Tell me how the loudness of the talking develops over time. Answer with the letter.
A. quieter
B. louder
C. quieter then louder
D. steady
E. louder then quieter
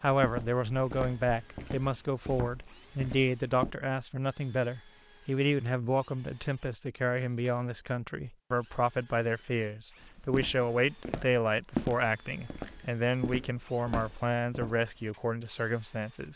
D.